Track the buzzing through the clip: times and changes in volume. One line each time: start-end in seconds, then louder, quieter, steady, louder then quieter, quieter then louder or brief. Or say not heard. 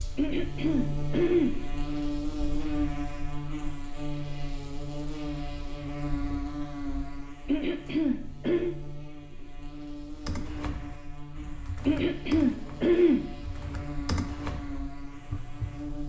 0.0-16.0 quieter.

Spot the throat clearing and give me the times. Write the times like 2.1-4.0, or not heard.
0.1-1.6, 7.5-8.8, 11.8-13.2.